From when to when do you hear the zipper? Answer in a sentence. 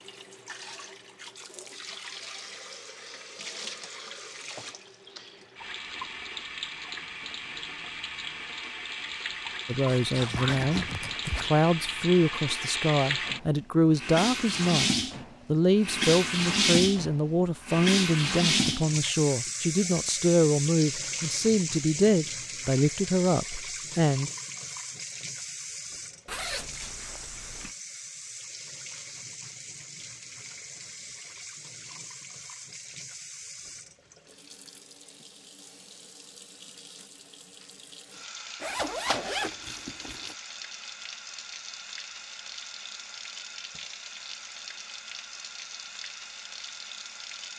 The zipper can be heard from 9.8 to 11.4 s, from 26.2 to 27.7 s and from 38.6 to 40.4 s.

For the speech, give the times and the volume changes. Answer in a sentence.
The speech can be heard from 9.7 to 24.3 s, at a steady volume.